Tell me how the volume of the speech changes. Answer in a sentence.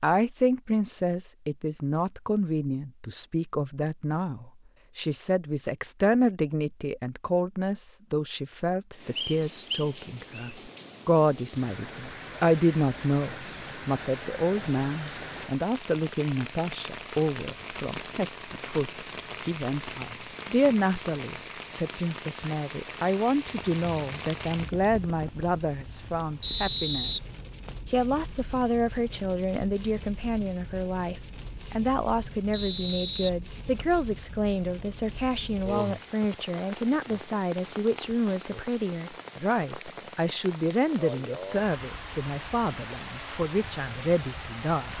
The volume of the speech stays about the same.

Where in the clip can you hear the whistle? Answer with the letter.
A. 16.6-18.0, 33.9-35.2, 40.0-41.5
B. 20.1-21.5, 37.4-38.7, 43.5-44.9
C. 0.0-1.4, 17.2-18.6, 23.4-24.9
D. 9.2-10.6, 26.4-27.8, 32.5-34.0
D.